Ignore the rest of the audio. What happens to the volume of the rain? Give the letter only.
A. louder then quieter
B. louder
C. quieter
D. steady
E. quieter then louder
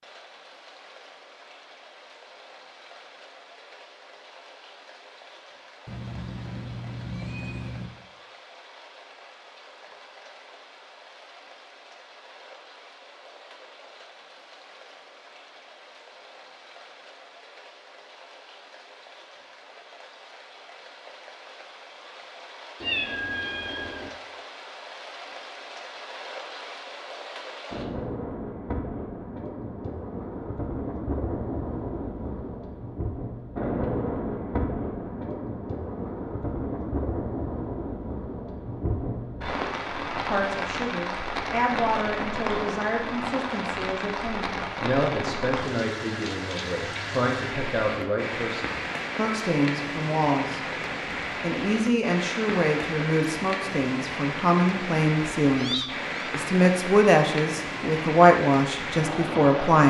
B.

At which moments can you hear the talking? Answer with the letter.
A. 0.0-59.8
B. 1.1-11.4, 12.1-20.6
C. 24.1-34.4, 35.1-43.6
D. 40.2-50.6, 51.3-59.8
D.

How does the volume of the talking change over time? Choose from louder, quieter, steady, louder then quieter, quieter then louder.
louder.